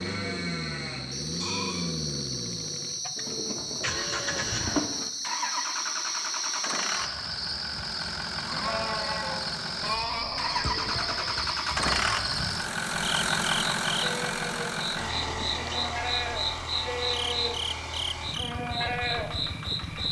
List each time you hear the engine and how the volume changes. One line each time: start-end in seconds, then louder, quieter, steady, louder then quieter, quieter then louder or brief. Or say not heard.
0.0-20.0 louder then quieter.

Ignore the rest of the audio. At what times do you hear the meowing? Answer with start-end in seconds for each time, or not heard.
3.1-5.1, 10.6-11.3, 15.1-15.7.